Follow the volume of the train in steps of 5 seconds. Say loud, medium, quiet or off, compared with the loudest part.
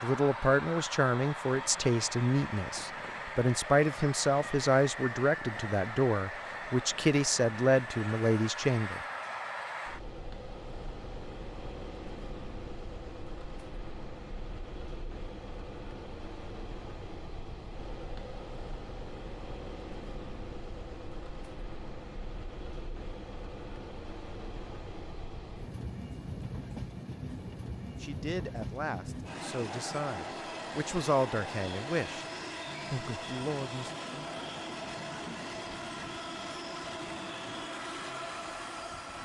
loud, loud, medium, medium, medium, loud, loud, loud.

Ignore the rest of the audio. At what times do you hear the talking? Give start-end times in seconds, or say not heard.
0.0-9.0, 28.0-32.2, 32.9-33.9.